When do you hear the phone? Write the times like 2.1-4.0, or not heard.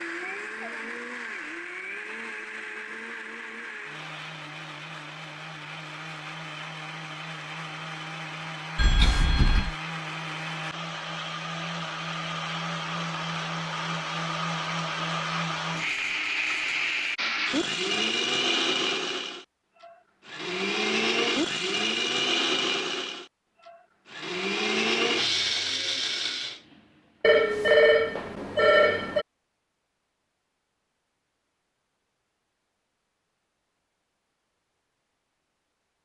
8.8-9.8, 27.2-29.2.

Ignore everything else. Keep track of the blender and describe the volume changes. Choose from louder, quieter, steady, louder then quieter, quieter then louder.
louder.